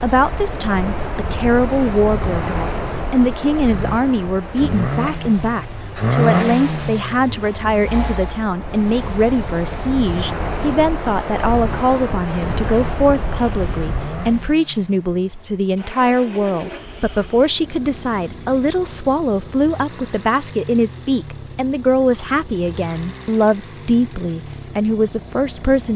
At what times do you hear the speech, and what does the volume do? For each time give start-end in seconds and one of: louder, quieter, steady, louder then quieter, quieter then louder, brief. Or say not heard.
0.0-25.9 steady.